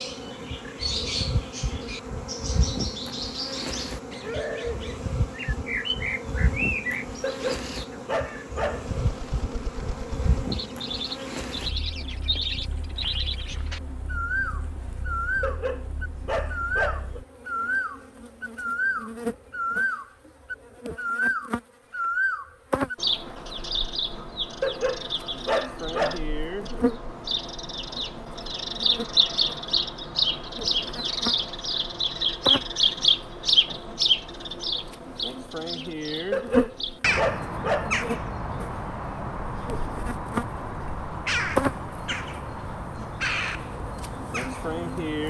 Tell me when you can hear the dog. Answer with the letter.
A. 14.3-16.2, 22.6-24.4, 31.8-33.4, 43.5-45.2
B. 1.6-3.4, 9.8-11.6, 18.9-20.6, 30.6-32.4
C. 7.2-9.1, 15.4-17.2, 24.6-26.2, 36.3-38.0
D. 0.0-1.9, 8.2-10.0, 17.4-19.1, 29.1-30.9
C.